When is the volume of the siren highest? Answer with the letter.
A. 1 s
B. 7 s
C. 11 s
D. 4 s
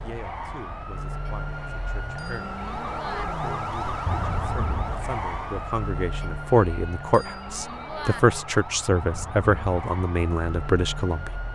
D.